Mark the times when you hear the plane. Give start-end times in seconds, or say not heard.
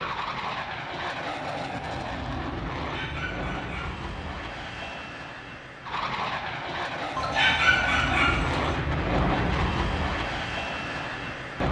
0.0-11.6.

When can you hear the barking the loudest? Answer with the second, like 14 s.
8 s.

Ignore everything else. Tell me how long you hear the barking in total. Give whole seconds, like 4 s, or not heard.
3 s.